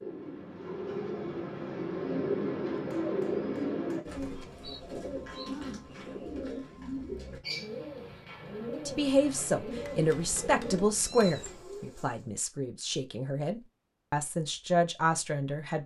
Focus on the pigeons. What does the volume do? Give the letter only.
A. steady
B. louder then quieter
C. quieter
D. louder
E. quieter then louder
C.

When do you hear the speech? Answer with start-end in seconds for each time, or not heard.
8.8-15.8.